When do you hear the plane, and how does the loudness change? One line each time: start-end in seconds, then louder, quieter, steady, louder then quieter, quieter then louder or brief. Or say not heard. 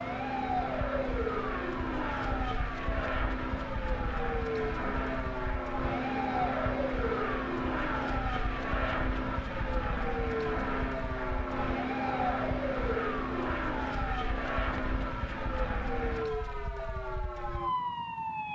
0.0-16.2 steady.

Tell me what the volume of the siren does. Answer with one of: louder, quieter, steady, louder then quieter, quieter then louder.
steady.